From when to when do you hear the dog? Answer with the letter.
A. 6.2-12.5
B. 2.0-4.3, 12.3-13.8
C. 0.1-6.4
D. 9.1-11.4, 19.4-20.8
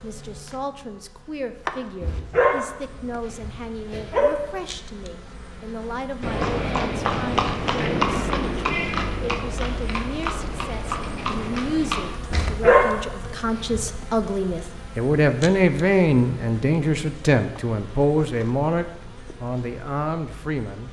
B.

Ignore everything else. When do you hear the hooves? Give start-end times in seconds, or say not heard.
6.2-12.5.